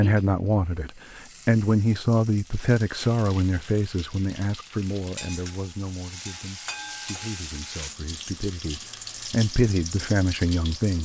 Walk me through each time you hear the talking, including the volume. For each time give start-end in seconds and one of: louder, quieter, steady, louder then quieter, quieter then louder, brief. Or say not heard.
0.0-10.9 quieter then louder.